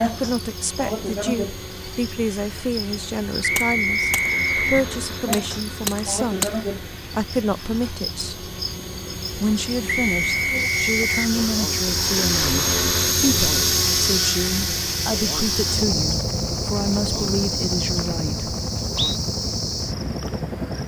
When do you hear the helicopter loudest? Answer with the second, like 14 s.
13 s.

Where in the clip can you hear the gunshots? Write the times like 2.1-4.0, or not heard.
3.5-6.5.